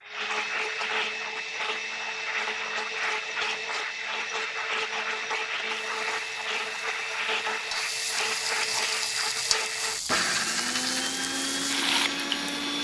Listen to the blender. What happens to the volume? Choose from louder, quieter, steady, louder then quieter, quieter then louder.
steady.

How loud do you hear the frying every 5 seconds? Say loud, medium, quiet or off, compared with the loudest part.
off, loud, loud.